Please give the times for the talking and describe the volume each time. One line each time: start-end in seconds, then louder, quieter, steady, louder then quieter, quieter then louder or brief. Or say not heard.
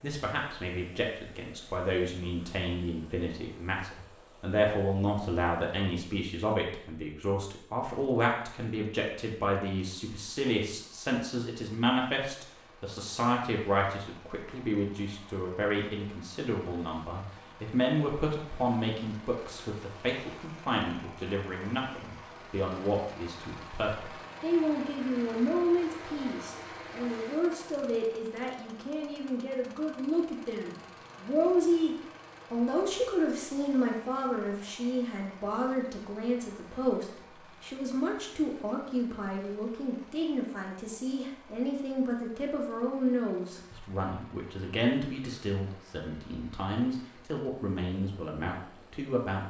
0.0-49.4 steady.